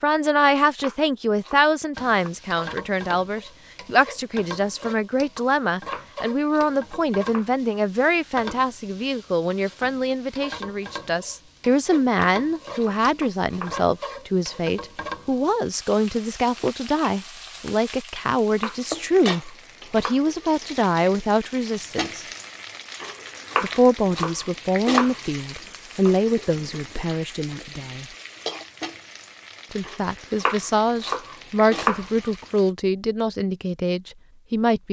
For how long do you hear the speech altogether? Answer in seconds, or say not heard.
32 s.